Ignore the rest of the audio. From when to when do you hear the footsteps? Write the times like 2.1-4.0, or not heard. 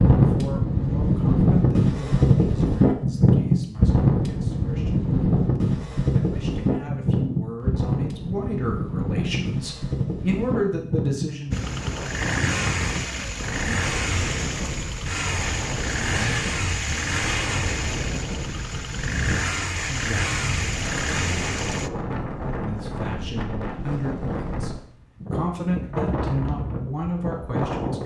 not heard.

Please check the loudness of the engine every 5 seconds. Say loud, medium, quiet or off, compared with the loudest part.
off, off, loud, loud, loud, off.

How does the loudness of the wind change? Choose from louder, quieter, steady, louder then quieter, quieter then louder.
quieter.